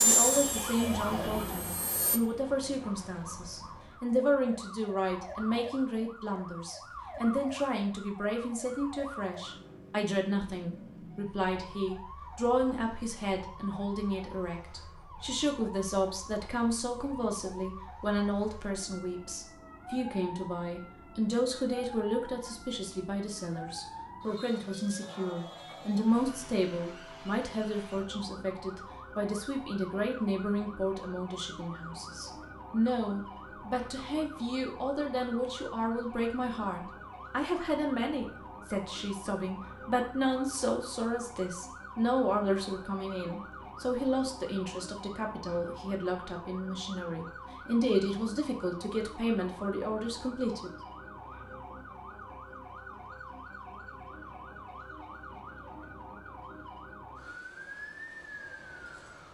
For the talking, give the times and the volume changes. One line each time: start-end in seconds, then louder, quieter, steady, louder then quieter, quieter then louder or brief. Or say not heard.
0.0-50.7 steady.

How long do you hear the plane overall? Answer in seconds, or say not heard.
2 s.